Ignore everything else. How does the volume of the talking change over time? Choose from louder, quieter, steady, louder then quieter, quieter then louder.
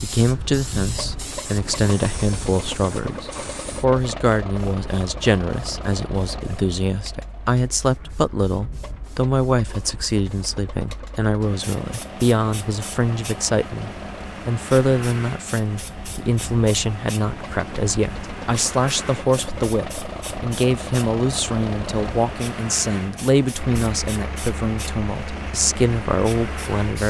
steady.